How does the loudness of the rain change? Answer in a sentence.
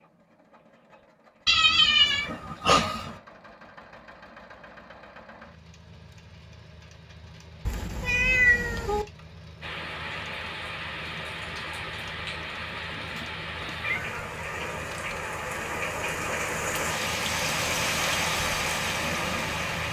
The volume of the rain goes up.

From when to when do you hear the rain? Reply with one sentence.
You can hear the rain from 9.6 to 19.8 s.